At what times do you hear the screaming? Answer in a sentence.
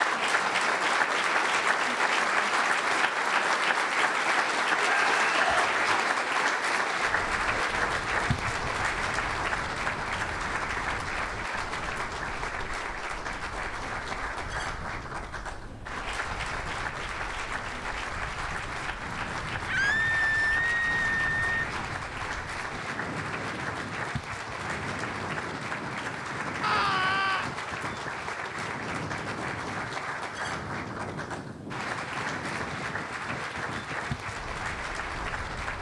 You can hear the screaming from 4.8 to 5.7 s, from 19.6 to 21.6 s and from 26.6 to 27.4 s.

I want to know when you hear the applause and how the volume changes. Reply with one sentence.
You can hear the applause from 0.0 to 35.7 s, getting quieter.